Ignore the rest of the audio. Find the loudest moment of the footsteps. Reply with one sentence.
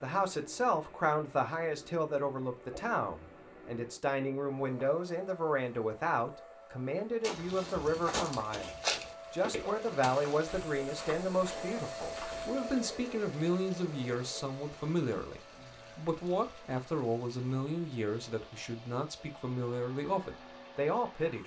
The volume of the footsteps peaks at 9 seconds.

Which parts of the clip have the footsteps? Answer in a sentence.
You can hear the footsteps from 7.2 to 12.5 s.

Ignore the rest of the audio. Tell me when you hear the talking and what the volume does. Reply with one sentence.
The talking can be heard from 0.0 to 21.4 s, at a steady volume.